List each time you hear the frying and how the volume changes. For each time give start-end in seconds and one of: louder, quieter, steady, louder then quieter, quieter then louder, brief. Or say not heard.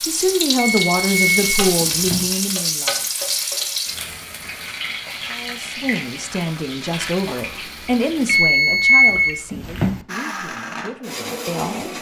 0.0-8.4 quieter.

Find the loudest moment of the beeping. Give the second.
9 s.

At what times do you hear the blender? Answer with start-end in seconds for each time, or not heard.
10.1-11.9.